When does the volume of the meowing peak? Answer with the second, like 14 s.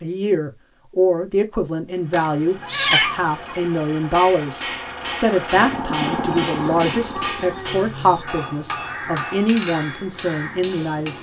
3 s.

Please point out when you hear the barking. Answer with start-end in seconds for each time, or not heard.
not heard.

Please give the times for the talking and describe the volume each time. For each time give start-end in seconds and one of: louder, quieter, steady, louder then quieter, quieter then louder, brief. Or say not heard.
0.0-11.1 steady.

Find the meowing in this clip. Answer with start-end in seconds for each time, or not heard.
2.1-3.6, 6.2-8.2.